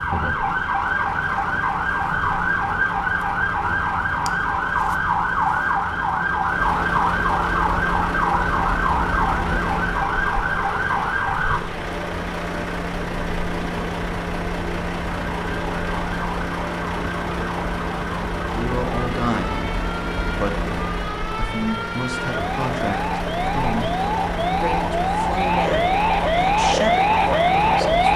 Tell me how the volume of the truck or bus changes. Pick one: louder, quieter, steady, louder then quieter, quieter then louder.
louder.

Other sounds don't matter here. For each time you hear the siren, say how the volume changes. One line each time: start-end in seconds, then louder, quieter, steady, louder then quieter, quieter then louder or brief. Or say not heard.
0.0-11.6 steady
15.3-28.1 louder.